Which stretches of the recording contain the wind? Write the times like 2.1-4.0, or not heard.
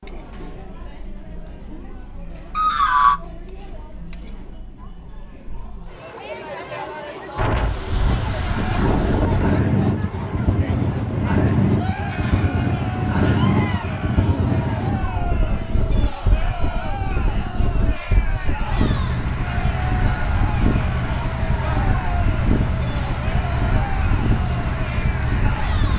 7.3-25.9.